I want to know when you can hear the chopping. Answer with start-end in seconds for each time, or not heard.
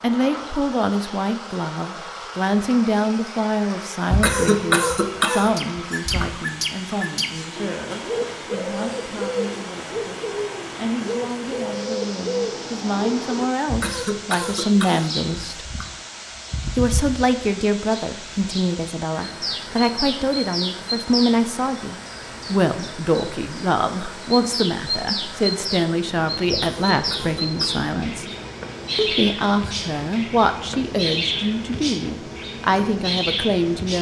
not heard.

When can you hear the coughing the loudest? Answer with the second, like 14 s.
5 s.